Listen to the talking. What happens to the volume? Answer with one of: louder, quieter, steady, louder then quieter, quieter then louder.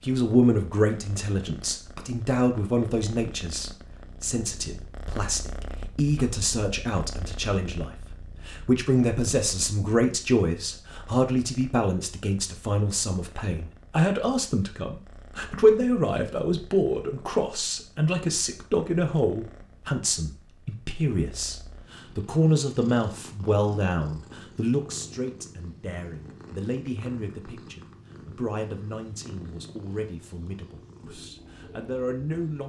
quieter.